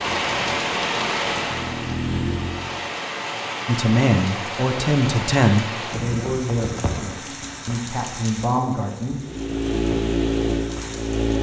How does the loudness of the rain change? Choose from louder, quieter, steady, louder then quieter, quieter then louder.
quieter.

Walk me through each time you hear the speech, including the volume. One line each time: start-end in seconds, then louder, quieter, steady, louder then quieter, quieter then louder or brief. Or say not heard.
3.6-9.2 quieter then louder.